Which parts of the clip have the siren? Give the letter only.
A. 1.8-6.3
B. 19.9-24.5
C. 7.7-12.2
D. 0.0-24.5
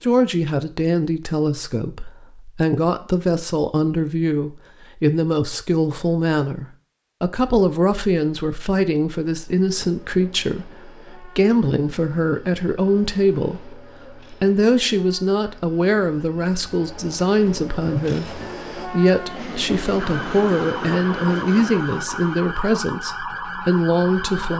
B.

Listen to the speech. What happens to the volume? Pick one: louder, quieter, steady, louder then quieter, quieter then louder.
steady.